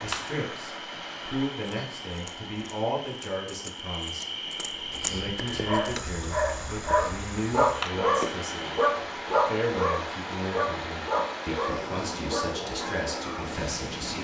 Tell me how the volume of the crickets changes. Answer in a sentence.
The volume of the crickets goes up, then down.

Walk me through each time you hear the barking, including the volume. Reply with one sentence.
The barking can be heard from 4.8 to 13.5 s, getting louder then quieter.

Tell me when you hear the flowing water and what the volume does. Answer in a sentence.
You can hear the flowing water from 0.0 to 14.2 s, getting quieter then louder.